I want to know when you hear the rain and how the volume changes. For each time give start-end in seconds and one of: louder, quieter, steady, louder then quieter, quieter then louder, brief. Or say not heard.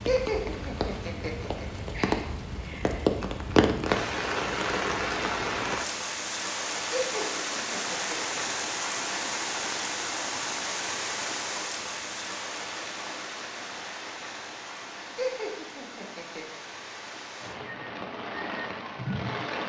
0.0-19.6 quieter.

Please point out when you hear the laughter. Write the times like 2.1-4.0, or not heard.
0.1-2.2, 6.9-8.5, 15.2-16.6.